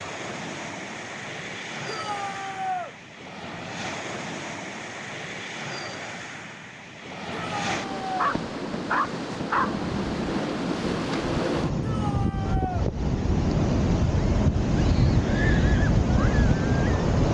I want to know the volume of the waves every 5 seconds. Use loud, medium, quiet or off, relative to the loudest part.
quiet, medium, loud, loud.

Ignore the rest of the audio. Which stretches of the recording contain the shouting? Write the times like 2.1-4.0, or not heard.
1.9-3.0, 7.3-8.2, 11.8-12.9.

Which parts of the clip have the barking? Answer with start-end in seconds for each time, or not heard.
8.2-9.8.